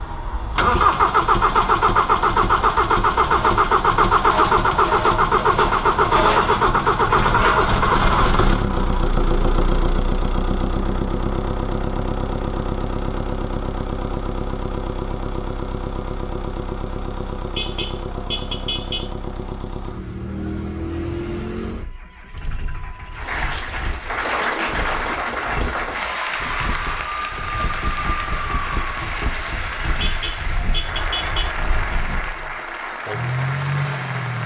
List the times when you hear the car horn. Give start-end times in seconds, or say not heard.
5.3-6.5, 17.6-19.1, 30.0-31.6.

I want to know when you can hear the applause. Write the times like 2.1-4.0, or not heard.
23.1-34.4.